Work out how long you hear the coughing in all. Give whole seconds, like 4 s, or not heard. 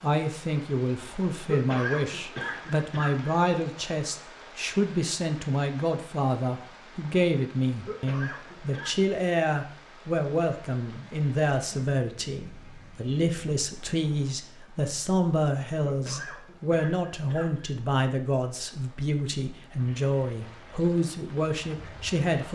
5 s.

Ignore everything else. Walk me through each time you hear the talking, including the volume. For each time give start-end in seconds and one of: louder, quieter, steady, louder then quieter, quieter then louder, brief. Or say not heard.
0.0-22.5 steady.